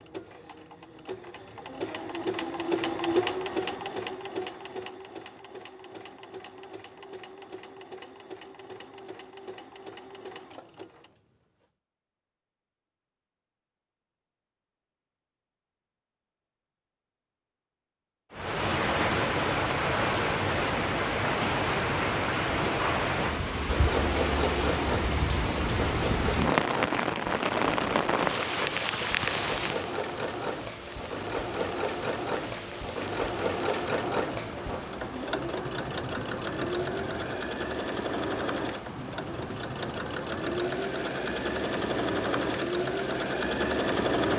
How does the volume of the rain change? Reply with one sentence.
The volume of the rain goes down.